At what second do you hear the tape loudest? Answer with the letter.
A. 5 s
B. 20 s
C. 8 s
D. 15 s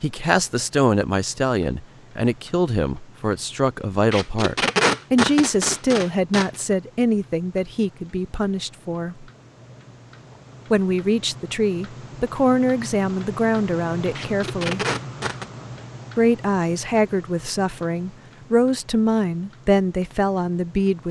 A.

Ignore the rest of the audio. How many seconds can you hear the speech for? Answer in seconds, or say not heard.
18 s.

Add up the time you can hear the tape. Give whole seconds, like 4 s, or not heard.
4 s.